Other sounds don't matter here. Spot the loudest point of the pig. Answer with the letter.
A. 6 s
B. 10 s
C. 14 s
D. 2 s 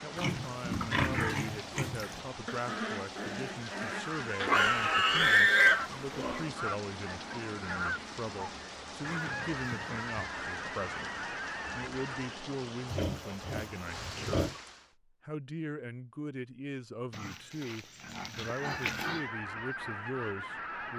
A.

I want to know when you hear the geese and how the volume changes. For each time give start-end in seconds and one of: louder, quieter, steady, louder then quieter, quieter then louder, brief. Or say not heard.
3.5-12.4 steady
18.4-20.9 brief.